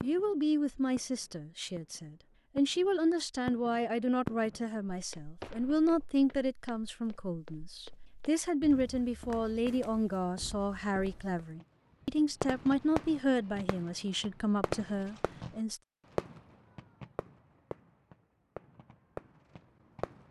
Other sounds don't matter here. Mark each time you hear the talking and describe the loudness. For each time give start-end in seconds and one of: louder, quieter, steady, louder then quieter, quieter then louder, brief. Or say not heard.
0.0-15.8 steady.